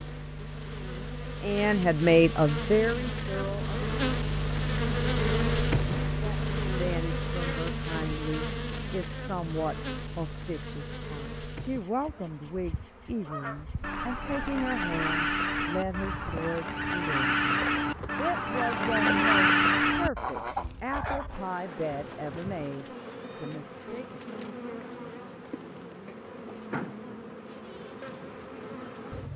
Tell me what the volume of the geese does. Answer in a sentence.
The volume of the geese goes up.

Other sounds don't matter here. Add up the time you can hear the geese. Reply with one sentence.
You can hear the geese for 8 seconds altogether.